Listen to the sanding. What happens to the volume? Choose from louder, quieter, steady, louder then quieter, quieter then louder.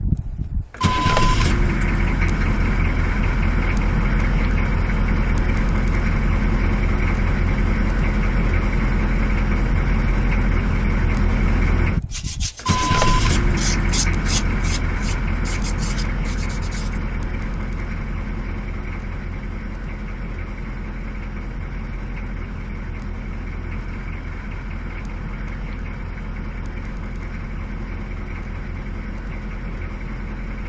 louder then quieter.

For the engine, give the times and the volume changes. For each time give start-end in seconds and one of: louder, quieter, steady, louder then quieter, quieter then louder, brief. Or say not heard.
0.0-30.6 quieter.